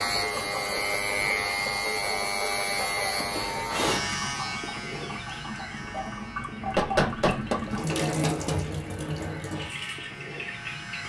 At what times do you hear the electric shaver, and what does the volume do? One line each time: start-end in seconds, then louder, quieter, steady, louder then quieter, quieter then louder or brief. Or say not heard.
0.0-11.0 quieter.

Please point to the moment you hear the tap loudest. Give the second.
8 s.